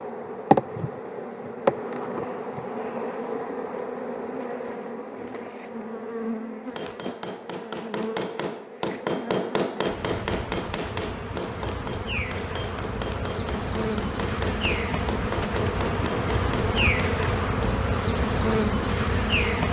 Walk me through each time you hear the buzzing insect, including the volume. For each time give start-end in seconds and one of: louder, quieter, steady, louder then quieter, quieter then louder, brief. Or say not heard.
0.0-19.6 quieter then louder.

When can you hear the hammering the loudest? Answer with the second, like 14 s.
9 s.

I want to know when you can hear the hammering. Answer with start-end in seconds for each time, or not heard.
6.7-17.9.